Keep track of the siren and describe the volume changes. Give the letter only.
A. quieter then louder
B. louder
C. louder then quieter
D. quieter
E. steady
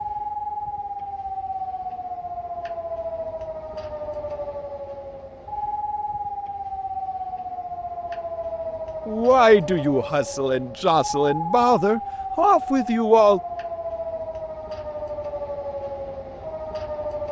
E.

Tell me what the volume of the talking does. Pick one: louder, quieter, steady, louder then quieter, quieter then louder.
quieter then louder.